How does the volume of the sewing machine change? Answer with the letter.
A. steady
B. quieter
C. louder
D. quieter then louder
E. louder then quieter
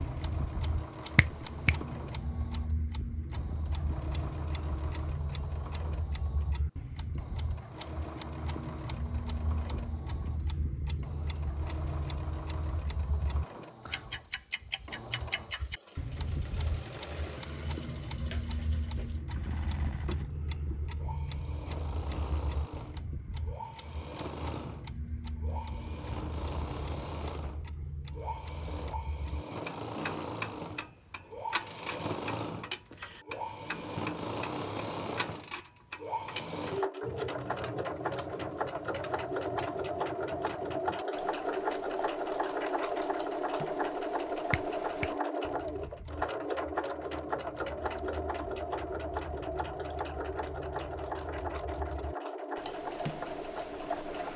C.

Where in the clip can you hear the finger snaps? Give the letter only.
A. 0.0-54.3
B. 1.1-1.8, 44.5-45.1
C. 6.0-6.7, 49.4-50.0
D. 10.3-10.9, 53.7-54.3
B.